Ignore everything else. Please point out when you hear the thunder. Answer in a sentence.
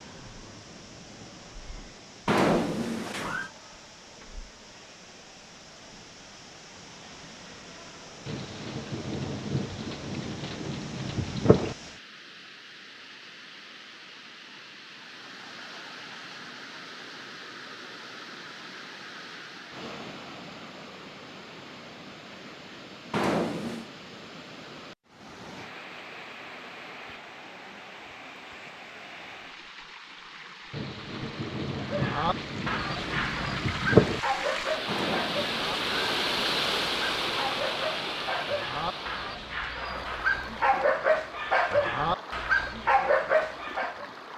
You can hear the thunder from 8.2 to 11.8 s and from 30.7 to 34.2 s.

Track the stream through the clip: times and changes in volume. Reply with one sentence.
You can hear the stream from 0.0 to 44.3 s, getting louder.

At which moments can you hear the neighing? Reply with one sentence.
You can hear the neighing from 2.2 to 3.5 s, from 23.1 to 23.9 s and from 34.9 to 36.3 s.